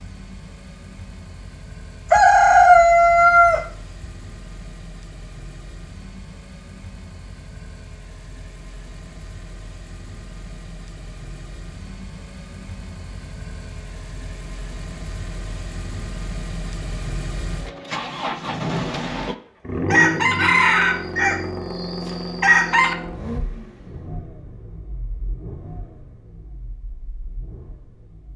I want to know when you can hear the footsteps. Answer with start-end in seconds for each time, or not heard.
not heard.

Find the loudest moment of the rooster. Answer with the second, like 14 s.
3 s.